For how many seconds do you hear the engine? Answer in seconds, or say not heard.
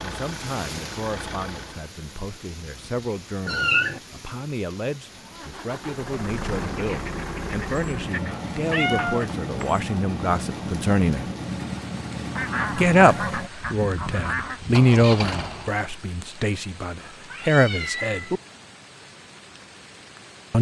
13 s.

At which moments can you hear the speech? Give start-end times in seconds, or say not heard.
0.0-11.2, 12.8-18.4.